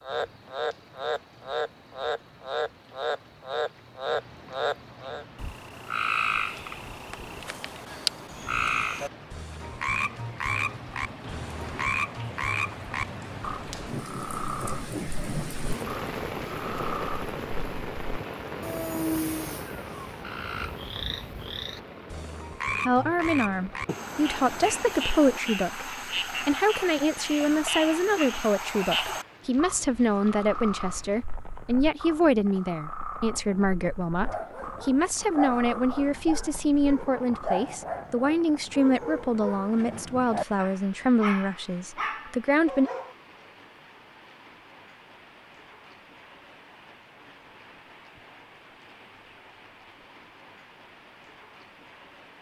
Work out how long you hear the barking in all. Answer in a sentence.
You can hear the barking for 9 seconds altogether.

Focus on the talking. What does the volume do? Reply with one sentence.
The volume of the talking stays about the same.